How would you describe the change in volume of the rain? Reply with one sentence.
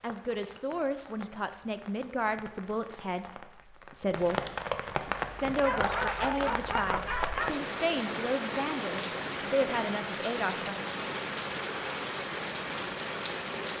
The loudness of the rain goes up.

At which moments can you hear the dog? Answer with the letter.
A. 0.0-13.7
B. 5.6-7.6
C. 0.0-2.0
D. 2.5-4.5
B.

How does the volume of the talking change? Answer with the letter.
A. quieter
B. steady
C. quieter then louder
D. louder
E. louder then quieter
B.